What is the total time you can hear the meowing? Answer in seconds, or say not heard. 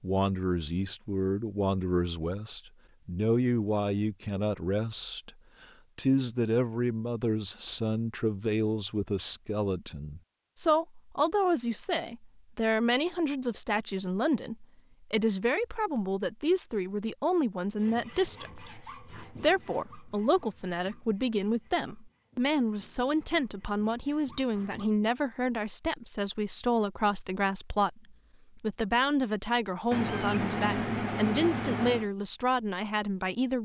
2 s.